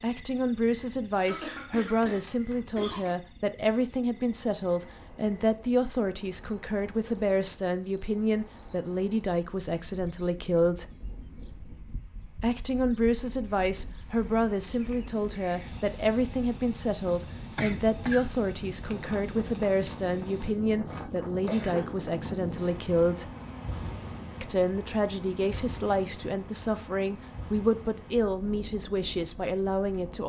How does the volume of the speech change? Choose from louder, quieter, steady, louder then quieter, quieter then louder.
steady.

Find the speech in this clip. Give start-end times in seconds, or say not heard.
0.0-10.9, 12.4-23.3, 24.4-30.2.